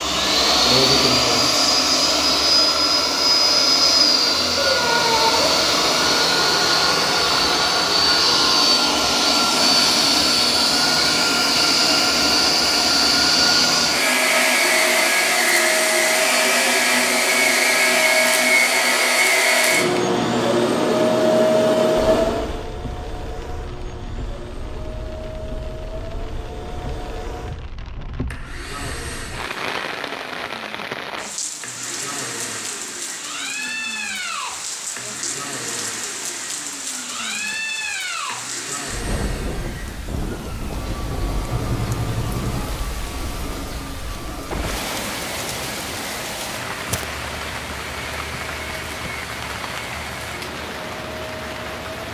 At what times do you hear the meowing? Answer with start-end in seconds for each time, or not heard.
4.7-5.6, 41.5-42.8.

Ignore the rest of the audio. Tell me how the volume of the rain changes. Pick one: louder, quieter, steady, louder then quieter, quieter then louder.
louder.